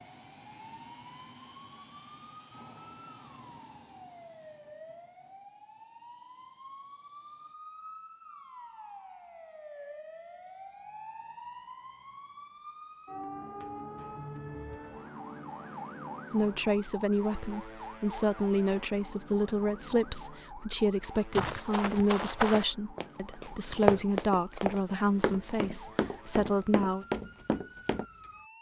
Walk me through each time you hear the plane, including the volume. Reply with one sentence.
The plane can be heard from 0.0 to 7.5 s, getting quieter.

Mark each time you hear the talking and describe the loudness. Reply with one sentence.
The talking can be heard from 16.3 to 27.1 s, at a steady volume.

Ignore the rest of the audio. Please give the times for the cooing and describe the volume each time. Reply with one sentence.
The cooing can't be heard in this clip.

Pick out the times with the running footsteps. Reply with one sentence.
The running footsteps can be heard from 21.3 to 28.1 s.